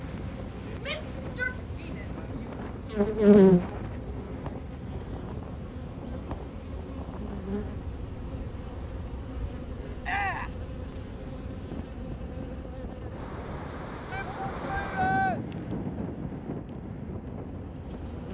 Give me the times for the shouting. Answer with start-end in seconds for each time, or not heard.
0.8-2.5, 10.0-10.6, 14.1-15.4.